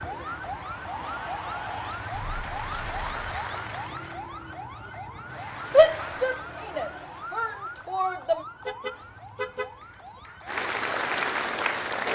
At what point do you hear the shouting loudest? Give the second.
6 s.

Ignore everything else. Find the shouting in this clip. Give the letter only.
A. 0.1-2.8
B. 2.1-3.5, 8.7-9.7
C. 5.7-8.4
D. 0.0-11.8
C.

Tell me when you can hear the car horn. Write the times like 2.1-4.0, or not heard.
2.1-3.5, 8.7-9.7.